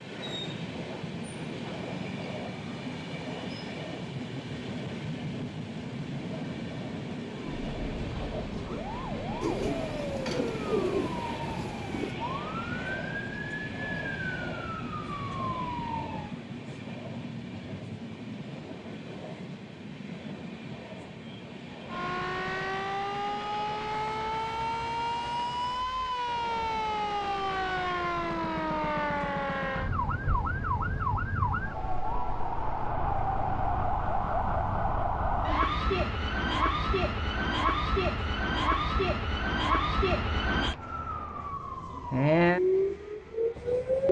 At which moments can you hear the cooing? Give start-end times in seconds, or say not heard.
9.4-12.2.